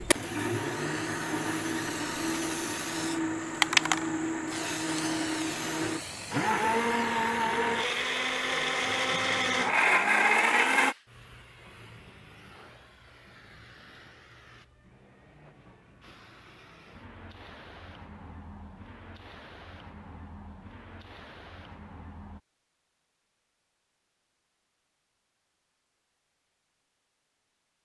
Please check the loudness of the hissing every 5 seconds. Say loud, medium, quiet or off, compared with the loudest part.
loud, medium, quiet, quiet, quiet, off.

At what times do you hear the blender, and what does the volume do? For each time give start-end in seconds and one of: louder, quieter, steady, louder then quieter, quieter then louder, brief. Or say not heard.
0.0-10.9 louder.